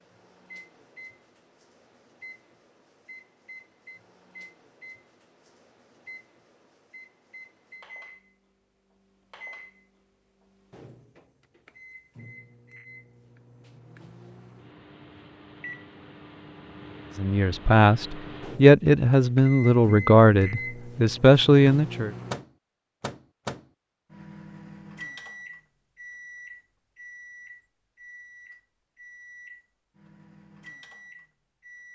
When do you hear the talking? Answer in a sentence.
You can hear the talking from 17.1 to 22.1 s.